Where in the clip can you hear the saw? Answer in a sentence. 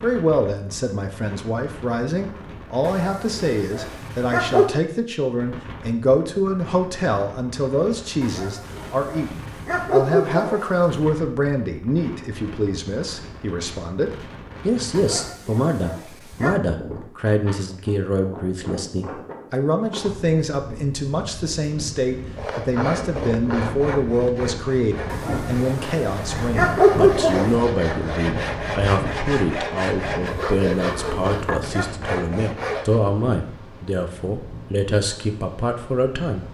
The saw can be heard from 22.4 to 33.0 s.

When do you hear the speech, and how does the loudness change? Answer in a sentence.
The speech can be heard from 0.0 to 36.4 s, at a steady volume.